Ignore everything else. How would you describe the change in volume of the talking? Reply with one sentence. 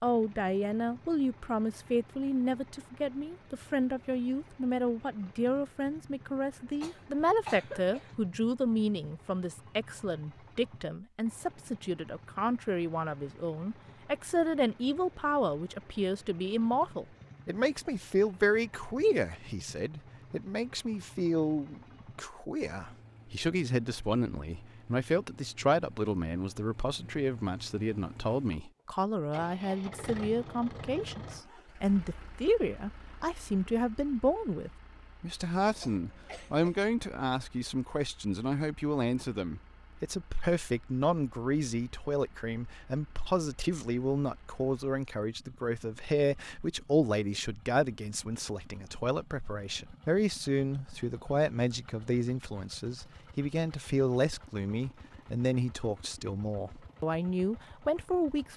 The loudness of the talking stays about the same.